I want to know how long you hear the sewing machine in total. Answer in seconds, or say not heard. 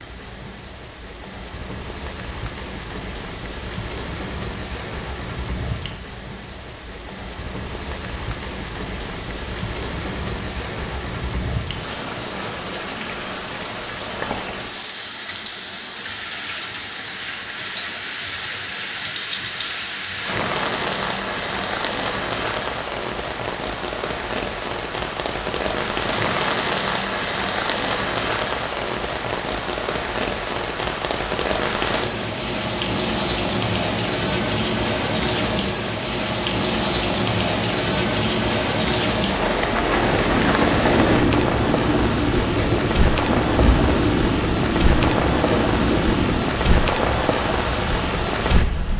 not heard.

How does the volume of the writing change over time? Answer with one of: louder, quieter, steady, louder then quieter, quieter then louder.
steady.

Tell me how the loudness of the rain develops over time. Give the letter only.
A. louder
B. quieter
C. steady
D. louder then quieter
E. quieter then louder
A.